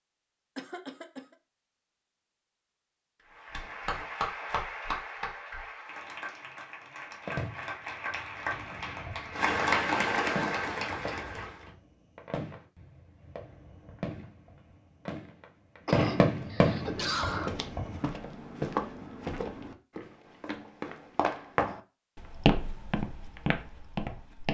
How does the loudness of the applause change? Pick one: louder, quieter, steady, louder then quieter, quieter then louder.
quieter then louder.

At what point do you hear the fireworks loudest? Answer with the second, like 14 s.
16 s.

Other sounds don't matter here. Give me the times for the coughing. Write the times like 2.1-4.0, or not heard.
0.6-1.4, 15.8-17.5.